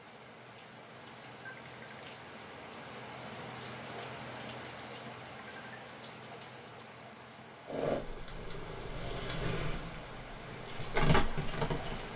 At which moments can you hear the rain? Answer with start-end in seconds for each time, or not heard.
0.0-12.1.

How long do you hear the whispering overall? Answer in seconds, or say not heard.
not heard.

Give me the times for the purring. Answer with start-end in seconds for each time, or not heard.
7.7-12.1.